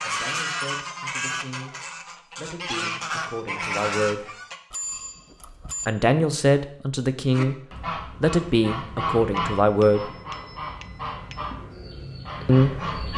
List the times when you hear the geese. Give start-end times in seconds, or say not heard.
0.0-4.6, 7.3-13.1.